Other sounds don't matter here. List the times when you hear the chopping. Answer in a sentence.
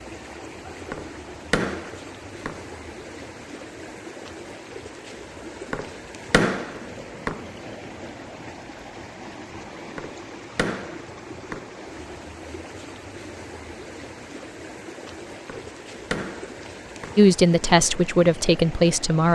The chopping can be heard from 0.9 to 2.6 s, from 5.7 to 7.5 s, from 9.9 to 11.7 s and from 15.4 to 17.2 s.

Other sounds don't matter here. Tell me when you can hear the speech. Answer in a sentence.
You can hear the speech from 17.1 to 19.3 s.